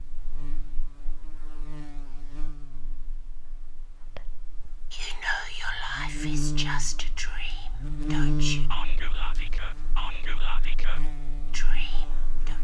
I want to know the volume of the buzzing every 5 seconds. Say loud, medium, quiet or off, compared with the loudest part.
quiet, loud, quiet.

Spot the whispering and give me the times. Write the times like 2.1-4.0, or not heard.
4.0-12.6.